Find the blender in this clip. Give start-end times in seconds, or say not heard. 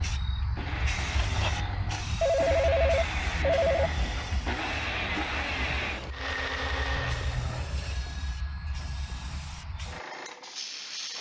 0.0-7.5.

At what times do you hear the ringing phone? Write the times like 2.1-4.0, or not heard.
2.2-3.9, 7.2-9.2.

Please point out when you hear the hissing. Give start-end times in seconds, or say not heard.
0.0-11.1.